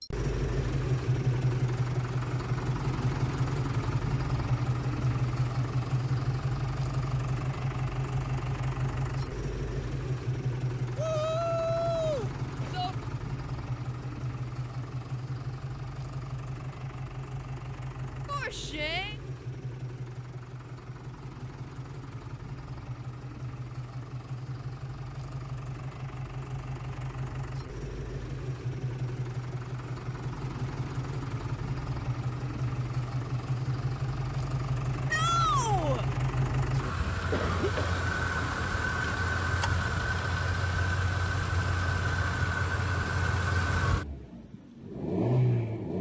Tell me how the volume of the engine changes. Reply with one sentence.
The loudness of the engine goes down, then up.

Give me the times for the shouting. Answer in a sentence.
You can hear the shouting from 10.9 to 12.9 s, from 18.2 to 19.1 s and from 35.1 to 36.0 s.